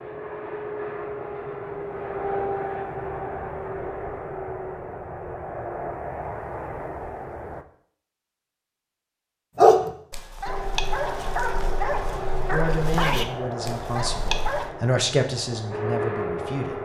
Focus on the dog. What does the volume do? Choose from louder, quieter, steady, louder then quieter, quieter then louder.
louder then quieter.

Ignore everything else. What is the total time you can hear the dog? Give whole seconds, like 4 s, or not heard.
5 s.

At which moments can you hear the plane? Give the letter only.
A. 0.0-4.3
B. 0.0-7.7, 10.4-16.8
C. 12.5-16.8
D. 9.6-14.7
B.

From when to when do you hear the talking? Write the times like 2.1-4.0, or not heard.
12.5-16.8.